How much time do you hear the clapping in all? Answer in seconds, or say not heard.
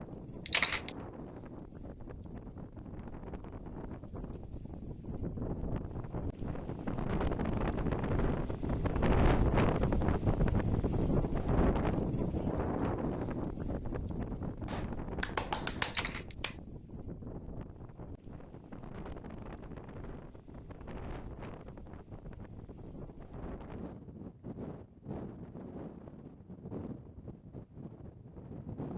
2 s.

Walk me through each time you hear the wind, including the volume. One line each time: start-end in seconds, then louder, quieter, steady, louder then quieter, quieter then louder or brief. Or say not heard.
0.0-28.9 louder then quieter.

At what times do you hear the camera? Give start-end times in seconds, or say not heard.
0.5-0.9, 15.8-16.4.